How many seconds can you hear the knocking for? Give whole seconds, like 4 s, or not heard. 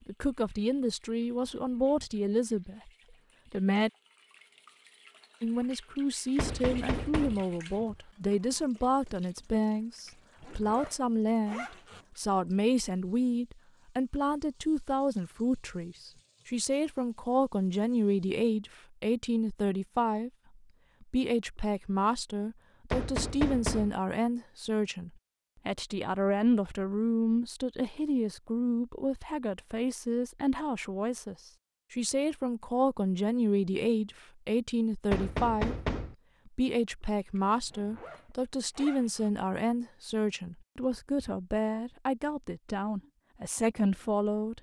3 s.